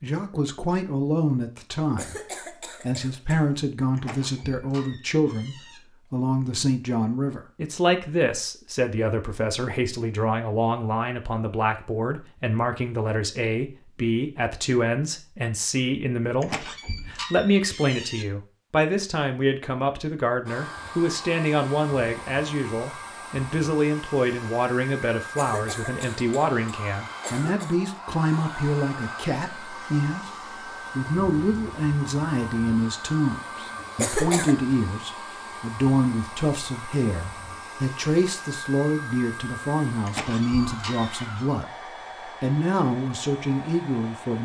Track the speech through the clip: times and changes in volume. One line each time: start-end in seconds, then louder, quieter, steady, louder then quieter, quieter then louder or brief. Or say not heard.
0.0-44.4 steady.